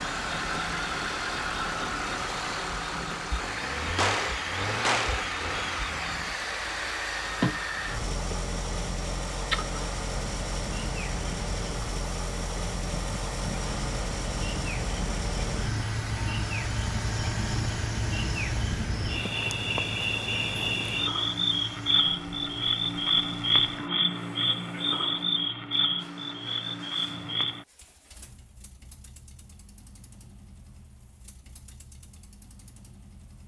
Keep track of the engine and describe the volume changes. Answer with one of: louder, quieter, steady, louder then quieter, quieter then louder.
quieter.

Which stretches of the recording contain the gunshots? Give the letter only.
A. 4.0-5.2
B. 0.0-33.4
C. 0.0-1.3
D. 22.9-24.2
A.